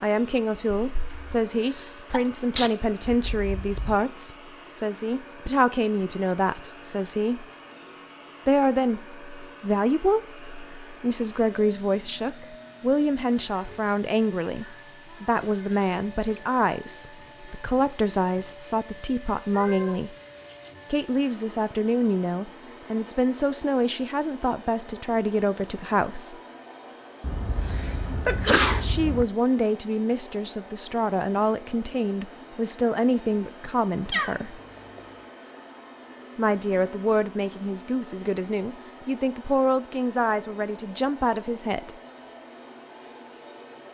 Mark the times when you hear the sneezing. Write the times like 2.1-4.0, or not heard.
0.8-2.7, 27.2-29.2.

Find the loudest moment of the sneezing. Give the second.
29 s.